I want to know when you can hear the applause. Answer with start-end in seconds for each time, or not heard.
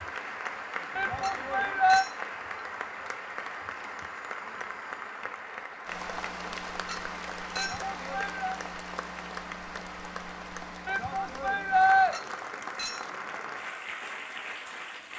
0.0-15.1.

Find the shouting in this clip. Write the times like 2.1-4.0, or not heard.
0.9-2.0, 7.5-8.6, 10.8-12.2.